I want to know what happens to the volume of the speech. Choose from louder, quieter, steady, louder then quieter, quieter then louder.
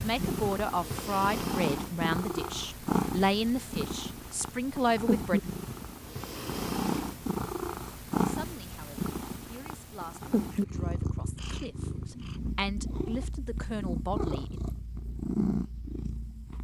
quieter then louder.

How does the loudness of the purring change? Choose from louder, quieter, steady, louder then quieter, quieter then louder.
steady.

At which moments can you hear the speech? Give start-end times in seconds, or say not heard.
0.0-5.4, 8.2-14.6.